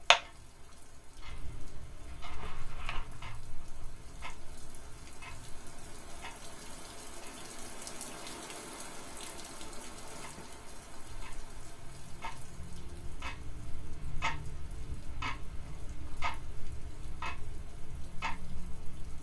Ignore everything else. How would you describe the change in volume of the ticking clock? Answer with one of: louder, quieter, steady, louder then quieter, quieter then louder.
quieter then louder.